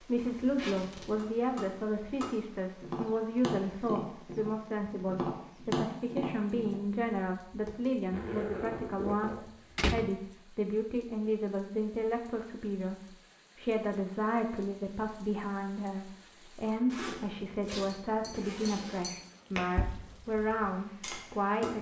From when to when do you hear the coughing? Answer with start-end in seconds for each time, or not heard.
not heard.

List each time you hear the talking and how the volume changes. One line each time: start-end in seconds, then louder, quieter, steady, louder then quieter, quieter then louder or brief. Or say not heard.
0.0-21.7 steady.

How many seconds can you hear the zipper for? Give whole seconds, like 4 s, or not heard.
5 s.